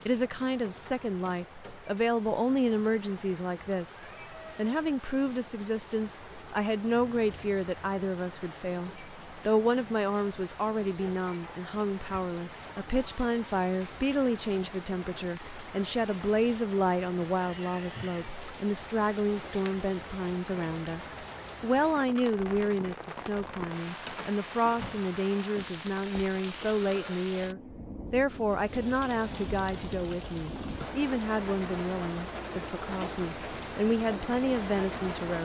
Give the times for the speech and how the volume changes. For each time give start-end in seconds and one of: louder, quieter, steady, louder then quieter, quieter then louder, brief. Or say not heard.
0.1-35.4 steady.